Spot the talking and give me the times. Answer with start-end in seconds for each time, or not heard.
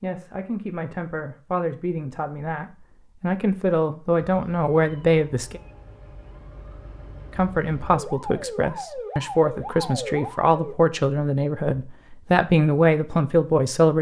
0.0-5.6, 7.3-13.9.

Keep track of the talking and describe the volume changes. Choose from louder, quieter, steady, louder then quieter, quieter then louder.
louder.